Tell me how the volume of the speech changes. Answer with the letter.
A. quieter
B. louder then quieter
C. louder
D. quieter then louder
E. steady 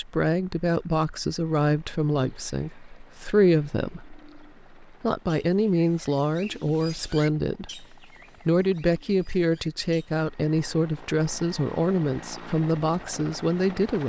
E.